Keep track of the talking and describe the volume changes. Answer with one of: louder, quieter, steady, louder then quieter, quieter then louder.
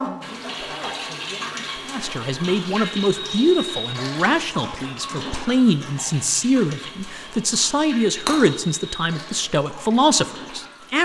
louder.